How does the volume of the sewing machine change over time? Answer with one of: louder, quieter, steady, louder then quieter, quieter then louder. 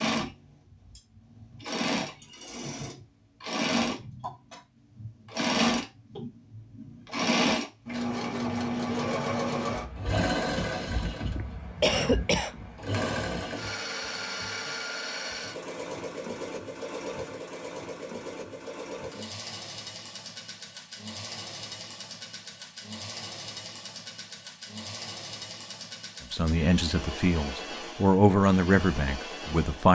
quieter.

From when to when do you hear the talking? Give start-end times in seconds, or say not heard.
26.3-29.8.